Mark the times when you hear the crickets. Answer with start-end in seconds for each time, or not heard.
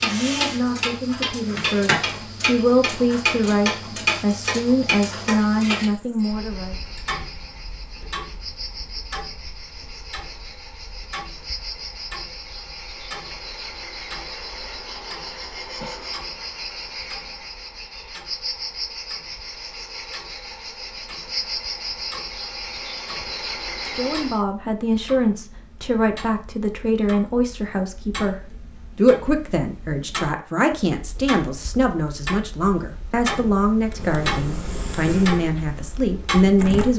0.1-24.4.